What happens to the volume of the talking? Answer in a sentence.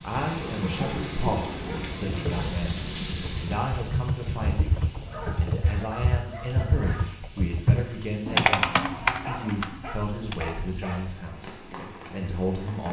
The volume of the talking stays about the same.